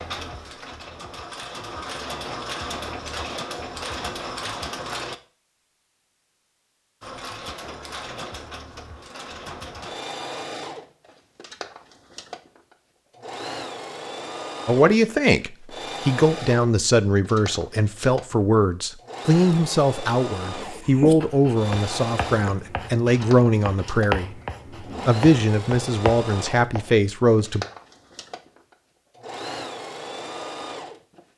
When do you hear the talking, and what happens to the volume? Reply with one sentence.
You can hear the talking from 14.7 to 24.4 s, at a steady volume; and briefly from 25.1 to 27.6 s.